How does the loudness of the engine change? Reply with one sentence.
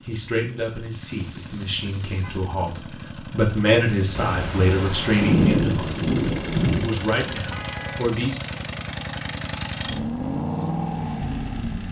The volume of the engine goes up.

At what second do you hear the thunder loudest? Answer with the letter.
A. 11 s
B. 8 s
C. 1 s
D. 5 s
D.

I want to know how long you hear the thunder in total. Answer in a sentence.
The thunder can be heard for 3 seconds in total.